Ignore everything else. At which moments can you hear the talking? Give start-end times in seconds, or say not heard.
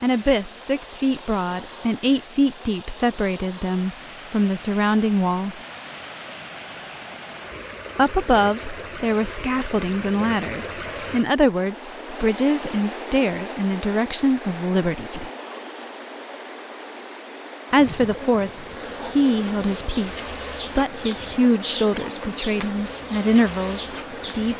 0.0-5.5, 8.0-15.3, 17.7-24.5.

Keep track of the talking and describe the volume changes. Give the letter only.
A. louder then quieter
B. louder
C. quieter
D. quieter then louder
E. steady
E.